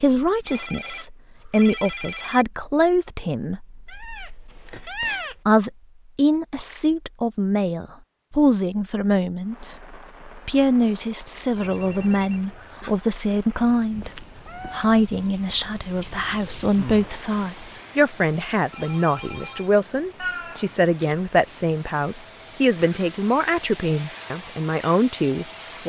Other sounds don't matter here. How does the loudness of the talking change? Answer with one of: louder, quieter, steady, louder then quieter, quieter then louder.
steady.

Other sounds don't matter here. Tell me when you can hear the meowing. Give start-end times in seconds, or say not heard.
3.9-5.3, 13.9-15.0, 20.1-21.1.